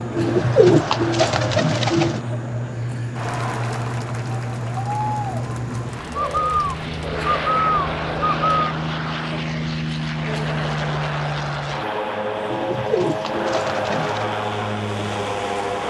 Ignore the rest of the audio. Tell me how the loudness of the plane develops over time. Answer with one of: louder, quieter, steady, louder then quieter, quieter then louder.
steady.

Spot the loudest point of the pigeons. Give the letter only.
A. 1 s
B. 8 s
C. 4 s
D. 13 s
A.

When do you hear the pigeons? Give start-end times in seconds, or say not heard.
0.1-2.2, 6.2-8.8, 12.5-14.3.